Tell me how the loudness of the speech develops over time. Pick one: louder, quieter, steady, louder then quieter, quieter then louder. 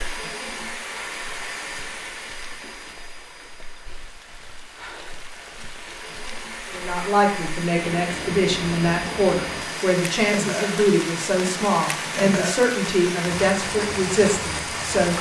steady.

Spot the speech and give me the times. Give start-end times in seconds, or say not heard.
6.7-15.1.